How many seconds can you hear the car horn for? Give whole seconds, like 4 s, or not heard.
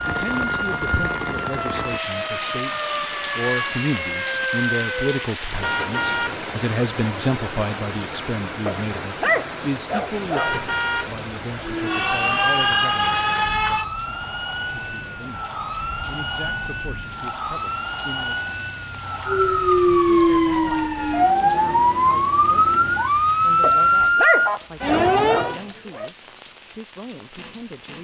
2 s.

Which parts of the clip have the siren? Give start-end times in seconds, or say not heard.
0.0-5.3, 11.6-25.6.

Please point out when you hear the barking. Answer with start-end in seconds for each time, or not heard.
8.7-10.6, 23.6-26.1.